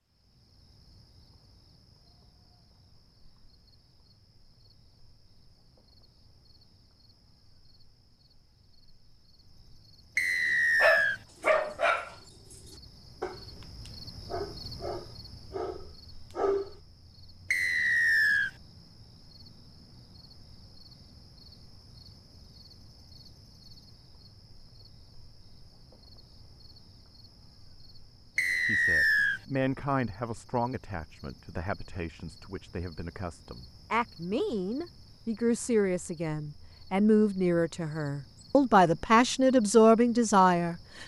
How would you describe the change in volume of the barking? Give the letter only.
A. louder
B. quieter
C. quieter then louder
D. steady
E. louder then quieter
C.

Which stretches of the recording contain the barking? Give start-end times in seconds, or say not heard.
10.8-16.7.